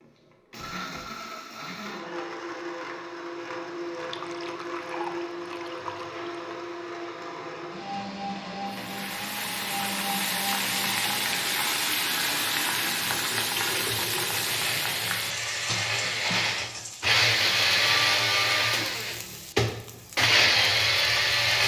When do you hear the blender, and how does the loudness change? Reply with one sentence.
The blender can be heard from 0.0 to 21.6 s, getting louder.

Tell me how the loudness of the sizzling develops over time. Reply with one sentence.
The volume of the sizzling goes down.